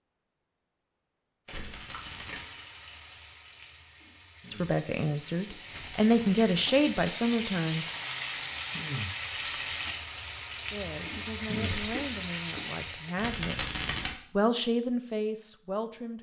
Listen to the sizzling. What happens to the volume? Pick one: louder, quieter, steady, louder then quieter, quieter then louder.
louder.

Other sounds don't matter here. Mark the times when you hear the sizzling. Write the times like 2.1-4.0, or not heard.
1.6-13.2.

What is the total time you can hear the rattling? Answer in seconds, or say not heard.
3 s.